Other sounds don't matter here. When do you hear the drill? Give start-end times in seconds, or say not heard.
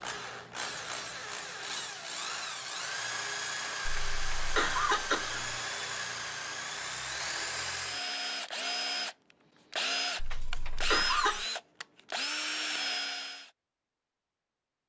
0.0-13.5.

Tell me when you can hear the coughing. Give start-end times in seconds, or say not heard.
3.9-5.5, 10.2-11.4.